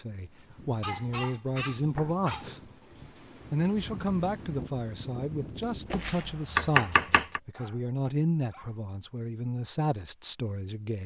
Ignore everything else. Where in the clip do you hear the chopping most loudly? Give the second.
7 s.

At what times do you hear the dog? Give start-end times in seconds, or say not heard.
0.8-2.8, 7.4-8.8.